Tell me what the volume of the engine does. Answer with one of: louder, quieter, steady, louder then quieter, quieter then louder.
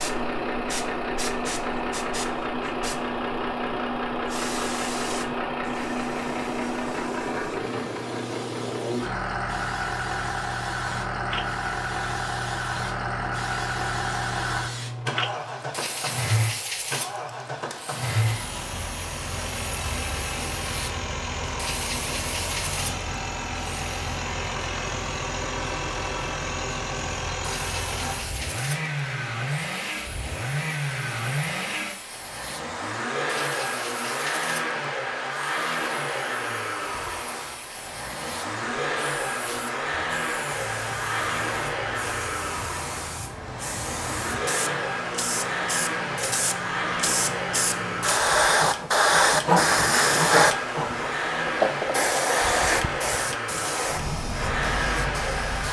steady.